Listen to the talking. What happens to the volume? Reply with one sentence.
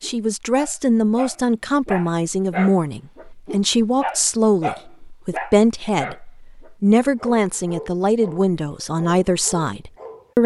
The loudness of the talking stays about the same.